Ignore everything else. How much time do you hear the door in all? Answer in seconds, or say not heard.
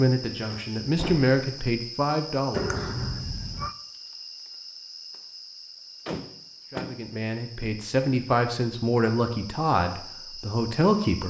2 s.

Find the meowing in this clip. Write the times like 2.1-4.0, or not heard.
2.5-3.8.